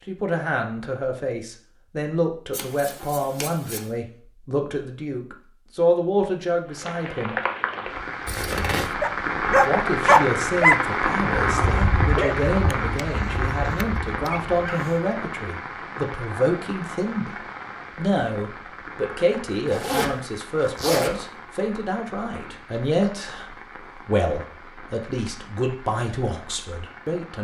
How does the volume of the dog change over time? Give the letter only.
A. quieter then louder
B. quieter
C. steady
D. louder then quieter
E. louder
B.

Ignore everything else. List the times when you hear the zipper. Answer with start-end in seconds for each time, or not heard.
8.2-8.9, 19.6-21.2.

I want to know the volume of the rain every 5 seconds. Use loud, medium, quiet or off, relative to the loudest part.
off, loud, loud, medium, quiet, quiet.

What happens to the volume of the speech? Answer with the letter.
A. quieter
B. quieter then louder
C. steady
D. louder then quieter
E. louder
C.